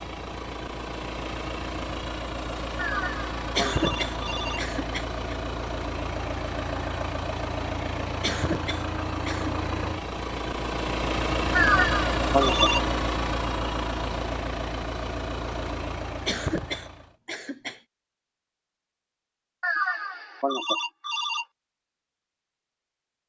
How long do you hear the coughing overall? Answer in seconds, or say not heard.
5 s.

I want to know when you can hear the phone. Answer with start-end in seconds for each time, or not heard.
2.8-4.6, 11.6-12.8, 19.6-21.4.